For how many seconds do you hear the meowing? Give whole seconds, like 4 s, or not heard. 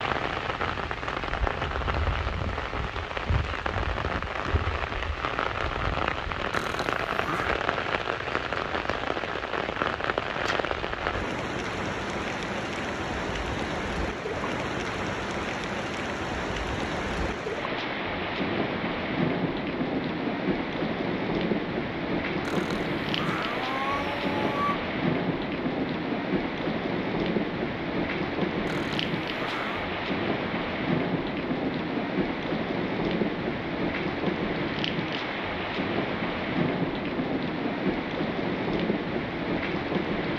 5 s.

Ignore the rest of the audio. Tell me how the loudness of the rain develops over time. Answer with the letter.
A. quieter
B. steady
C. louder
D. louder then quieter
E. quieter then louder
B.